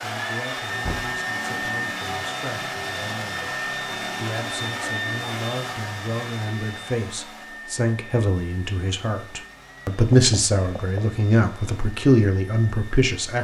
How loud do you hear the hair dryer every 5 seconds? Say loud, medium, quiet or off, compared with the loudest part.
loud, medium, quiet.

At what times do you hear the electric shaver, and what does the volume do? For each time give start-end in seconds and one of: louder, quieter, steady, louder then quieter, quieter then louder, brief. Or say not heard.
not heard.